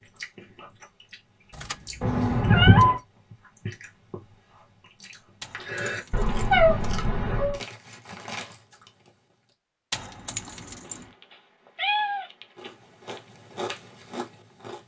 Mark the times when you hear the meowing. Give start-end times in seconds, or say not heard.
2.0-3.0, 6.1-7.6, 10.8-13.2.